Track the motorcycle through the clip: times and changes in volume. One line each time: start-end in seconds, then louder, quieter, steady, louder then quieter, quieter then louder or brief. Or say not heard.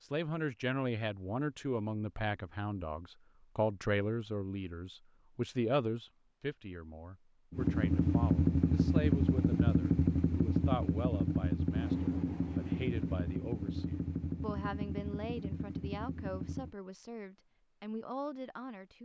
7.5-16.8 quieter.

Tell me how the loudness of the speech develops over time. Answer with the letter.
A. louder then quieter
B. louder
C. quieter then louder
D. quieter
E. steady
D.